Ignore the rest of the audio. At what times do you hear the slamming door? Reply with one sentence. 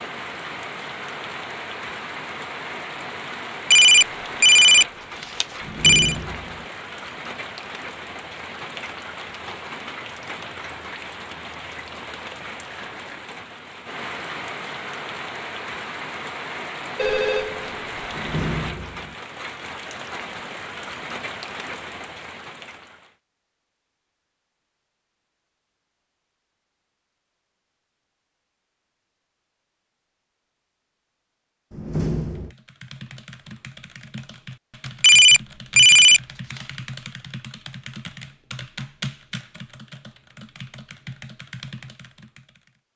The slamming door can be heard from 5.6 to 6.7 s, from 18.1 to 19.1 s and from 31.7 to 32.5 s.